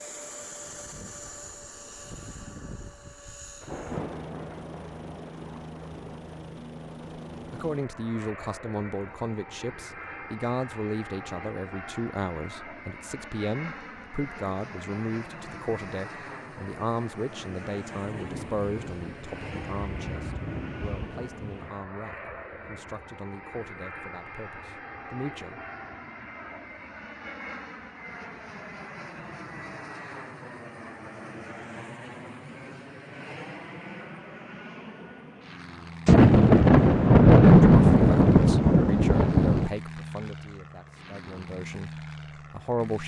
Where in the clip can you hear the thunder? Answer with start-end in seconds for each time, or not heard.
3.6-6.0, 18.1-21.8, 36.0-39.7.